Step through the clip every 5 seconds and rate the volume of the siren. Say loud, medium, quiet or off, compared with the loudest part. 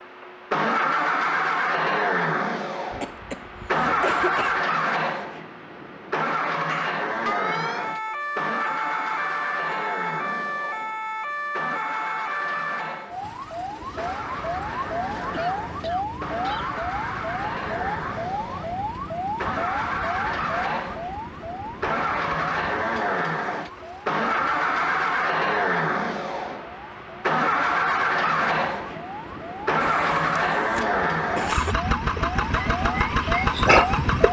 off, loud, loud, loud, medium, medium, loud.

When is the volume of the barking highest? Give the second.
34 s.